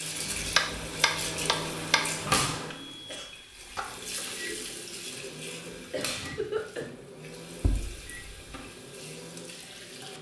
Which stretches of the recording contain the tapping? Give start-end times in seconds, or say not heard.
0.6-2.0, 7.6-8.6.